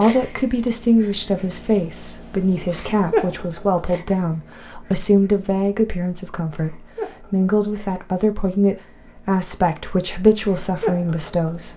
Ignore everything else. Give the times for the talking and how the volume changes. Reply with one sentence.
The talking can be heard from 0.0 to 11.7 s, at a steady volume.